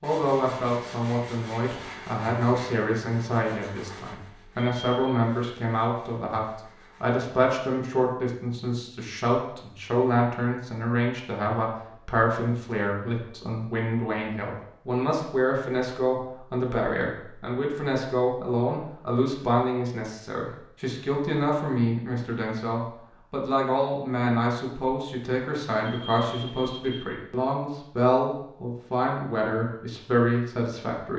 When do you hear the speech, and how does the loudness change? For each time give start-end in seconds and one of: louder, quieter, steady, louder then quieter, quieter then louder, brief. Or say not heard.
0.0-31.1 steady.